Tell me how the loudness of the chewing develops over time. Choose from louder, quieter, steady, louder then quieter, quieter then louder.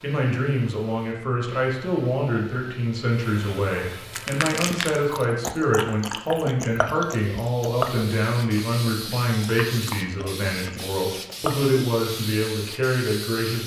quieter.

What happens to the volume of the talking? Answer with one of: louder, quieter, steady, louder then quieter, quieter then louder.
steady.